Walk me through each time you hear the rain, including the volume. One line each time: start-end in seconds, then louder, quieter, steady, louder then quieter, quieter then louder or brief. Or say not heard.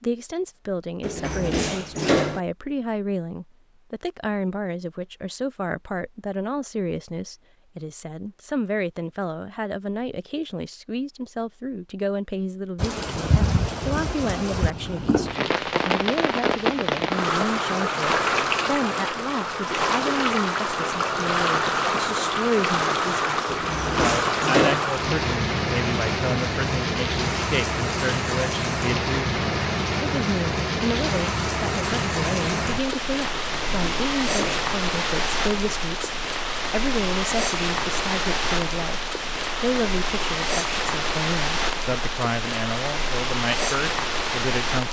12.8-44.8 steady.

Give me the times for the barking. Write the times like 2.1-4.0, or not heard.
not heard.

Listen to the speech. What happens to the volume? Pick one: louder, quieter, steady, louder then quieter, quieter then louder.
steady.